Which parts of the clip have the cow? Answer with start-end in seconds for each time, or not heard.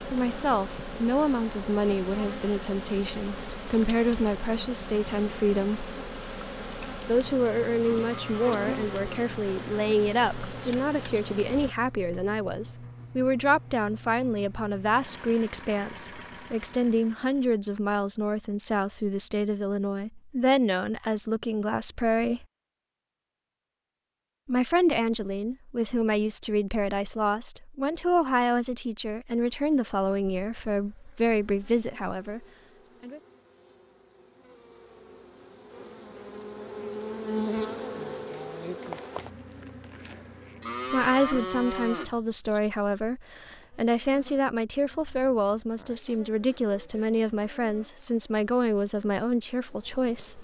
8.0-9.2, 40.6-42.1.